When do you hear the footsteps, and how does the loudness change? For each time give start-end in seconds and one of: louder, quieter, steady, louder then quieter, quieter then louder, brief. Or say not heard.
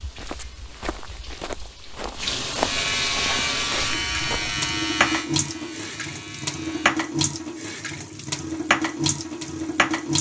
0.0-4.7 louder then quieter.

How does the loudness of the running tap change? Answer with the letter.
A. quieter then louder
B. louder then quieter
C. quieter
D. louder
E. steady
D.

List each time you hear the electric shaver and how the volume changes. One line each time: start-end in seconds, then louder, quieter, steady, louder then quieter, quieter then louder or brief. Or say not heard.
2.6-7.0 quieter.